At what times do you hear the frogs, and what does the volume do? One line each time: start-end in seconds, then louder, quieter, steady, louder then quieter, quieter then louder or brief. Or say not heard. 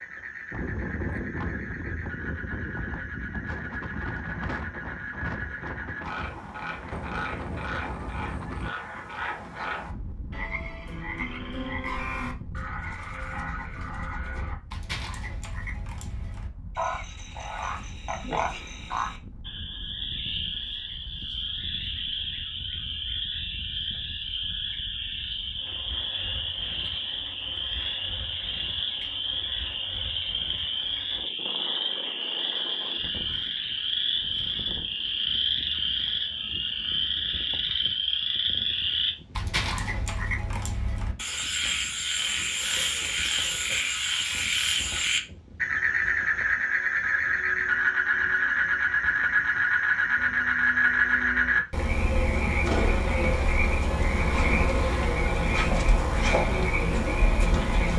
0.0-57.9 louder.